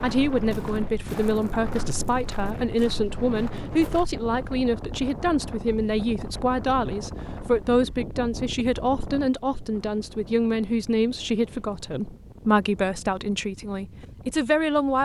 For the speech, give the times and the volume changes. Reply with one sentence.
The speech can be heard from 0.0 to 15.0 s, at a steady volume.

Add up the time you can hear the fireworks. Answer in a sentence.
The fireworks can't be heard in this clip.